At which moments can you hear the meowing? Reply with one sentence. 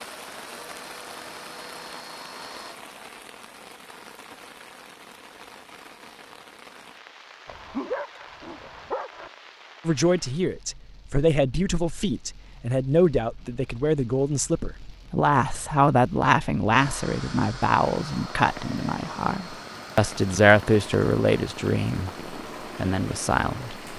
You can't hear the meowing here.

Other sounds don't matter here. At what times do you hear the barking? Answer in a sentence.
The barking can be heard from 7.5 to 9.3 s.